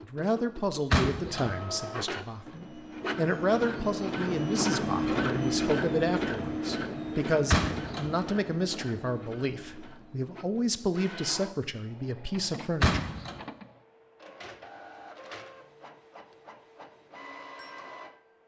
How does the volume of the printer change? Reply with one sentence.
The volume of the printer goes up, then down.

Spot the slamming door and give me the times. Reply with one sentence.
You can hear the slamming door from 0.9 to 1.6 s, from 7.5 to 8.2 s and from 12.8 to 13.3 s.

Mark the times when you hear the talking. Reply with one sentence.
The talking can be heard from 0.0 to 13.0 s.